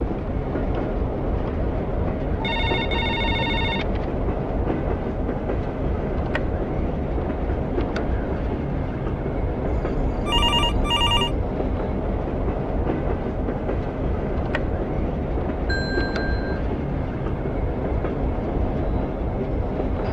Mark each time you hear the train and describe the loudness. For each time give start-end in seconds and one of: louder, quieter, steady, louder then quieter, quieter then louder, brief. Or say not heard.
0.0-20.0 steady.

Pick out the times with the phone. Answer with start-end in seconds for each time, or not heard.
2.4-4.0, 9.7-11.3, 15.7-16.6.